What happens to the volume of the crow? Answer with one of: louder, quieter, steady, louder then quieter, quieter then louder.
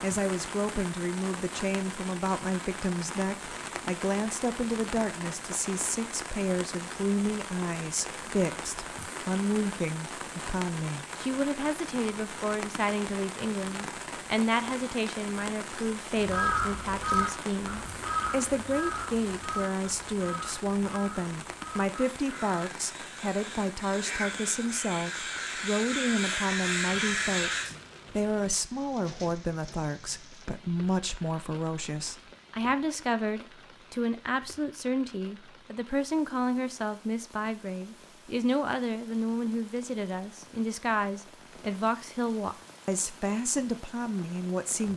quieter then louder.